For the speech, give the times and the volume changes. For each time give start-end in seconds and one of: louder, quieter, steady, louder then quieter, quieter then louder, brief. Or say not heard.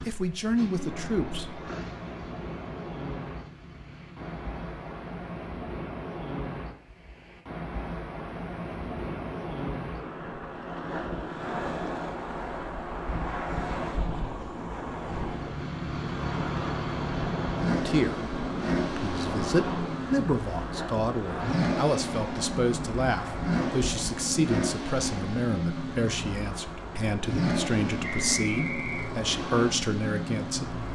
0.0-1.6 brief
17.7-30.9 steady.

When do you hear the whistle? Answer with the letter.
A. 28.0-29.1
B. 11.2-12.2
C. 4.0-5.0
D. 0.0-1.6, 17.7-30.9
A.